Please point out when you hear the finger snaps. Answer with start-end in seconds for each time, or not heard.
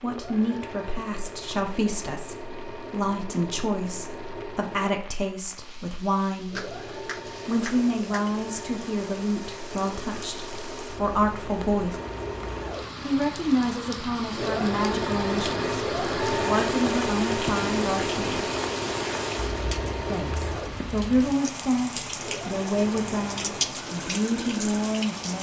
6.5-8.2.